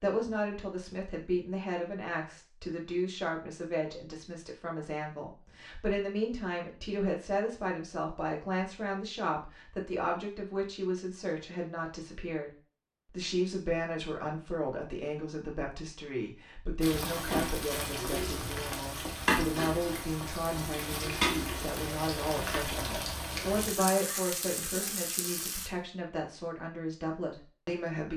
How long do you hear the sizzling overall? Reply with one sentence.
You can hear the sizzling for 9 seconds altogether.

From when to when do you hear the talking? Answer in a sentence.
You can hear the talking from 0.0 to 12.5 s and from 13.1 to 28.1 s.